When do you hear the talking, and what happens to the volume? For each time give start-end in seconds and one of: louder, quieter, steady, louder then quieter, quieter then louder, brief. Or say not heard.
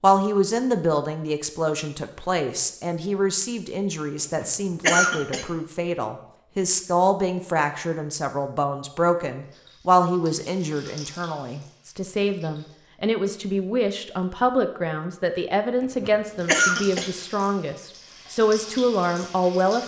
0.0-19.8 steady.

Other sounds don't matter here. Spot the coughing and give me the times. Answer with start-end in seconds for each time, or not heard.
4.3-5.5, 15.8-17.1.